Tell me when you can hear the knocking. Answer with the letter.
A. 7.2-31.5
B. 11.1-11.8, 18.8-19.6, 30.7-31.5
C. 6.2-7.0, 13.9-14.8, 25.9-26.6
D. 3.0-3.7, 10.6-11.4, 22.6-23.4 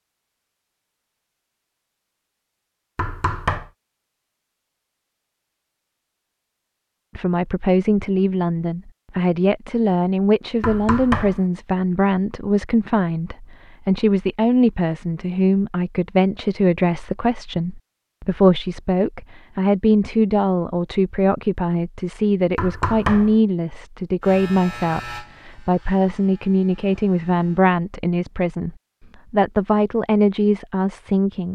D.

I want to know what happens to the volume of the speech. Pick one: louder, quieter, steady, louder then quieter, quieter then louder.
steady.